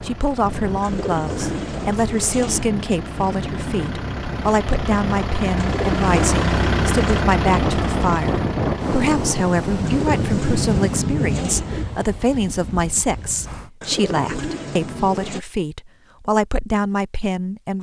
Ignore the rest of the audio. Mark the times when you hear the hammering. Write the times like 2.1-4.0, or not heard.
not heard.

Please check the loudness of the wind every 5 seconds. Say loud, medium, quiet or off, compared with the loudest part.
medium, loud, loud, off.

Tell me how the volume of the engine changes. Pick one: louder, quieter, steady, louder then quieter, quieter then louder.
louder then quieter.